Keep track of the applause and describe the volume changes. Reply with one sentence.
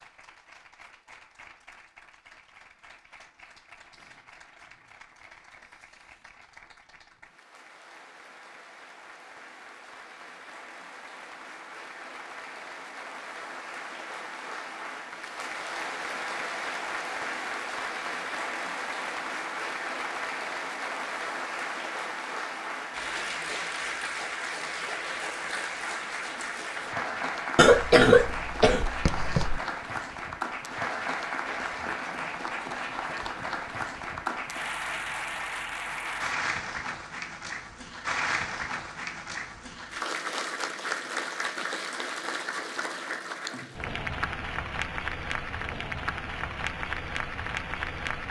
The volume of the applause goes up.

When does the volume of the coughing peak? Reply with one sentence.
The volume of the coughing peaks at 28 seconds.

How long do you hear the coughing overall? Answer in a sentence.
The coughing can be heard for 2 seconds in total.